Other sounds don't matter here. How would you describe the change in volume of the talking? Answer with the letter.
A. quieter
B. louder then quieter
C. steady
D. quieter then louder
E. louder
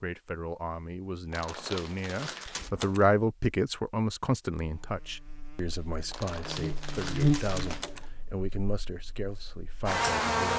B.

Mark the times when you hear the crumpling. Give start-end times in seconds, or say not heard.
1.3-2.7, 6.1-7.9.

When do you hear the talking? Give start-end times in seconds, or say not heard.
0.0-10.5.